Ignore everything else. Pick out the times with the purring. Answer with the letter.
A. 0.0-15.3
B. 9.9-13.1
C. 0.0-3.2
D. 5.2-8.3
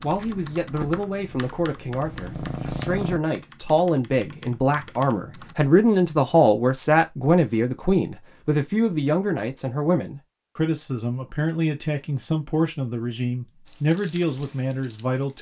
C.